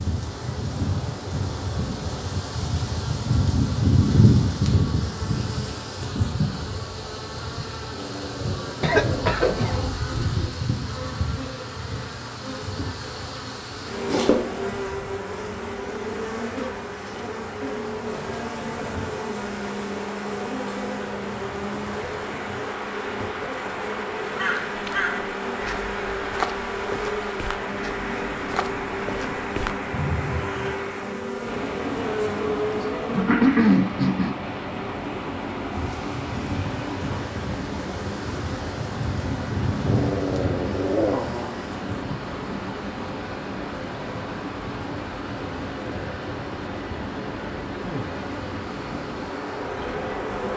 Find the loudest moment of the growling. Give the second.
41 s.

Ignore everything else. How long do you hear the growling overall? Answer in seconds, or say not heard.
4 s.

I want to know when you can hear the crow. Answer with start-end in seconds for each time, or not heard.
24.2-30.8.